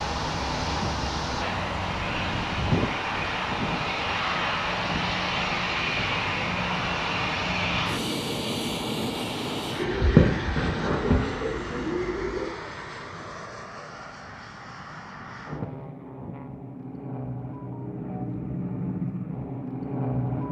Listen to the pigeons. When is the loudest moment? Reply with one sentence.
The loudest moment of the pigeons is at 10 seconds.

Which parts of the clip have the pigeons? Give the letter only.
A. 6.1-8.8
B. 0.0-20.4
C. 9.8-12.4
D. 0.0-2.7
C.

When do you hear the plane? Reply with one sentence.
You can hear the plane from 0.0 to 20.4 s.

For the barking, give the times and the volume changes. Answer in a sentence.
The barking can't be heard in this clip.